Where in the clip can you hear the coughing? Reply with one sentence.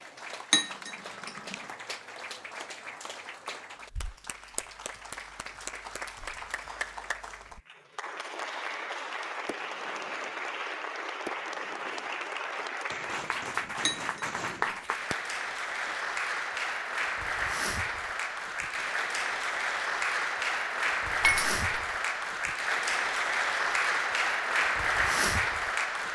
You can't hear the coughing here.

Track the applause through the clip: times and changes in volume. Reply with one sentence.
You can hear the applause from 0.0 to 26.0 s, getting louder.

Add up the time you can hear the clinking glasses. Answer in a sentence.
The clinking glasses can be heard for 2 seconds in total.